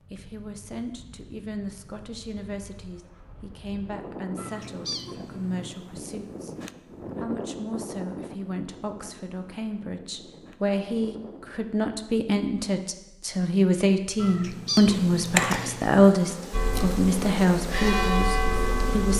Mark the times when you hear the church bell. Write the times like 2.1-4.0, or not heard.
16.5-19.1.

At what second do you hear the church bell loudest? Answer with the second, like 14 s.
18 s.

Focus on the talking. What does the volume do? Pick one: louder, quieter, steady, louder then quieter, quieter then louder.
louder.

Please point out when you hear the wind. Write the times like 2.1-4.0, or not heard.
0.0-11.8.